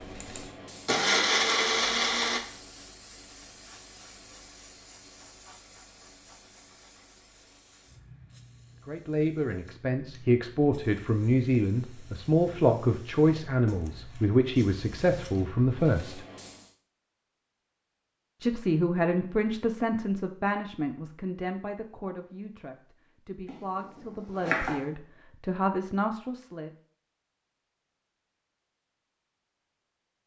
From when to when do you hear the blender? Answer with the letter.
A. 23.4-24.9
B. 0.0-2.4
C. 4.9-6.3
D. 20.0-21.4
B.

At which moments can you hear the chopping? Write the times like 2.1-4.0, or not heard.
23.4-24.9.